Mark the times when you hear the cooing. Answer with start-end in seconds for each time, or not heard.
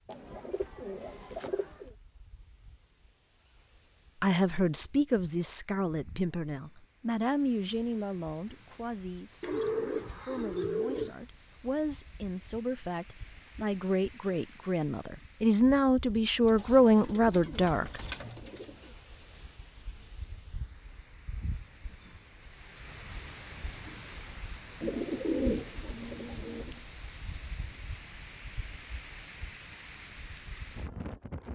0.1-1.9, 9.4-11.2, 16.4-18.9, 24.8-26.8.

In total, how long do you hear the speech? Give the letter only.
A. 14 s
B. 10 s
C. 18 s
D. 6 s
A.